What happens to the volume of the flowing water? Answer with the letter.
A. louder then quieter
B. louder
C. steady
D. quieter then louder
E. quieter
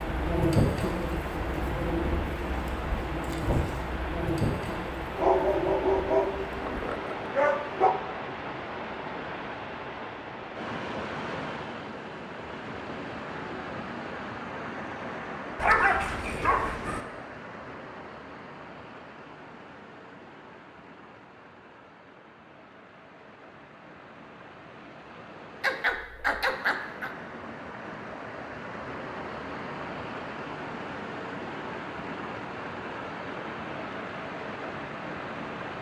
D.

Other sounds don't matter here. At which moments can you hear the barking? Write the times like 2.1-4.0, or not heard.
5.2-8.0, 15.6-17.0, 25.6-27.1.